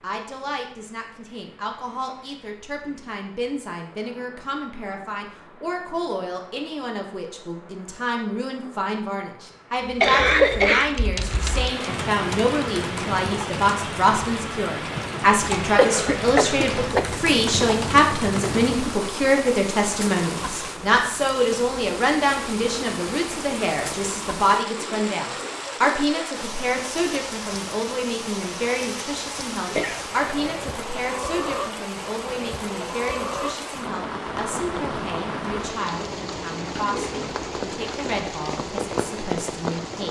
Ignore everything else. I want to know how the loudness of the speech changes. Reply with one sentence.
The loudness of the speech goes up, then down.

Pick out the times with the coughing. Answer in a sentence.
You can hear the coughing from 10.0 to 10.9 s, from 15.6 to 17.1 s and from 29.6 to 30.6 s.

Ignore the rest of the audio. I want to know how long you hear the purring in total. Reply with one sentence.
The purring can't be heard in this clip.